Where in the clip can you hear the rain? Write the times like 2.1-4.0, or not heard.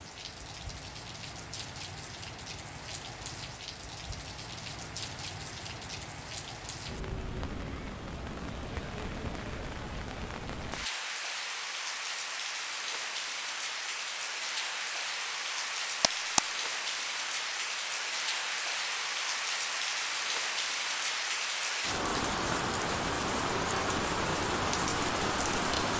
0.0-25.9.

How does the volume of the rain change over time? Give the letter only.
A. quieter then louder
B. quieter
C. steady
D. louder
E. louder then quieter
D.